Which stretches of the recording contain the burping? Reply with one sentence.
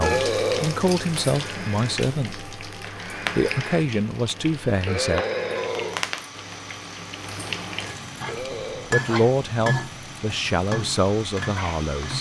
You can hear the burping from 0.0 to 0.8 s, from 4.8 to 6.0 s and from 8.2 to 8.9 s.